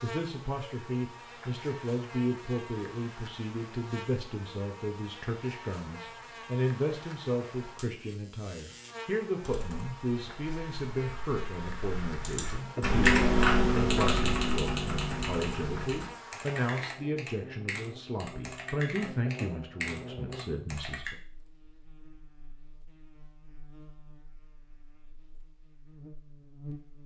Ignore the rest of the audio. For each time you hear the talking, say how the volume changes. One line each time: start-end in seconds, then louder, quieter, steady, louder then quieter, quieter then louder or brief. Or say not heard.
0.0-21.1 steady.